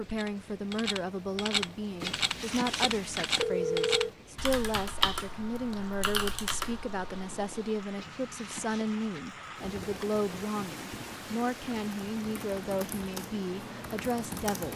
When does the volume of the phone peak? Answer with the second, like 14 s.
4 s.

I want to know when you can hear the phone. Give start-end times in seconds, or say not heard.
2.0-4.1, 8.0-9.2.